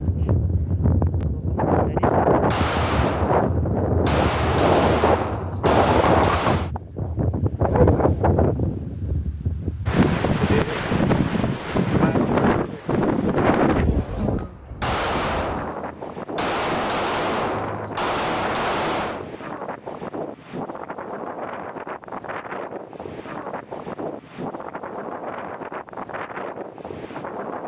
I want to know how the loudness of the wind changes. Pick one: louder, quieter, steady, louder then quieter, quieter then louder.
quieter.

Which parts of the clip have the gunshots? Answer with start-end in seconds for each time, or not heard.
2.0-6.7, 14.3-19.3.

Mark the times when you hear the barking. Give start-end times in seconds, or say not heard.
7.6-8.2.